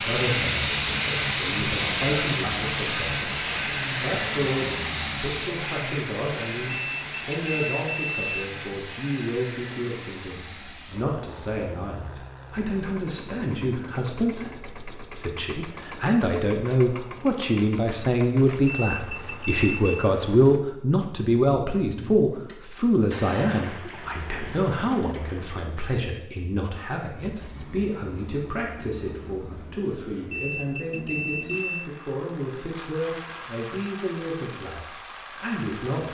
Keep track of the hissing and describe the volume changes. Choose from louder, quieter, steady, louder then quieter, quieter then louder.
quieter.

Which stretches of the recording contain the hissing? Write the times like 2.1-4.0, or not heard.
0.0-5.5.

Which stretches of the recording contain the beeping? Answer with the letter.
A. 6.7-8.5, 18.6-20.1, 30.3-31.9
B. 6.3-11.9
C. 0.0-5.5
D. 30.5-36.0
A.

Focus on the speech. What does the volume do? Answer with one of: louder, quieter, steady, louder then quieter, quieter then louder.
louder then quieter.